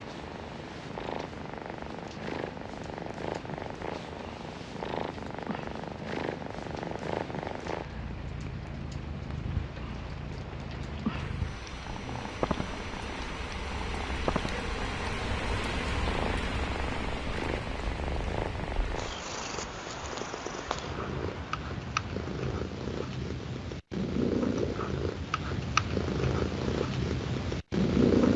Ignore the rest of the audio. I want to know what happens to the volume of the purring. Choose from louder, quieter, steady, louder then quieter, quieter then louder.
louder.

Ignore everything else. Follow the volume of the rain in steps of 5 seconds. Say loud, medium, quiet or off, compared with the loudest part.
medium, medium, loud, loud, medium, off.